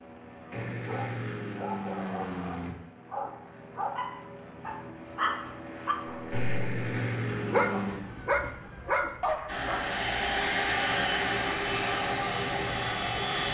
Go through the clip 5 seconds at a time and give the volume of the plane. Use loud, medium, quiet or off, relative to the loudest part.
medium, medium, loud.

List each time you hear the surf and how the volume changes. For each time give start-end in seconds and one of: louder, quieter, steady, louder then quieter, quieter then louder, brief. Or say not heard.
not heard.